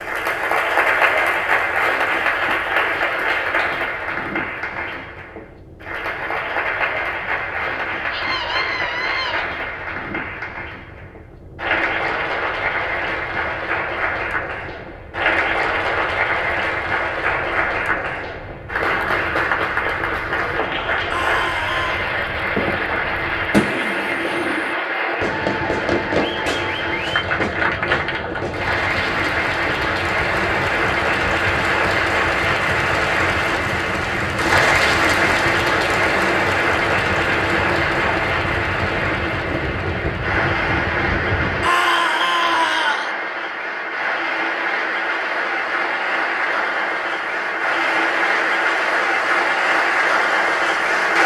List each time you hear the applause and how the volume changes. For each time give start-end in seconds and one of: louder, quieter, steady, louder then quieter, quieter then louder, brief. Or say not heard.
0.0-51.2 steady.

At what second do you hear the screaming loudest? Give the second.
42 s.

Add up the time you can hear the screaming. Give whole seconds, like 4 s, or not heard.
4 s.